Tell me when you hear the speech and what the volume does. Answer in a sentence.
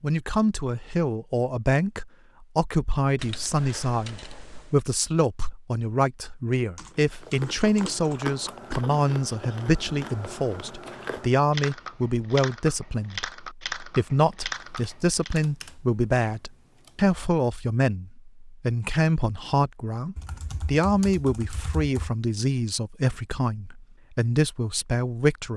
You can hear the speech from 0.0 to 25.5 s, at a steady volume.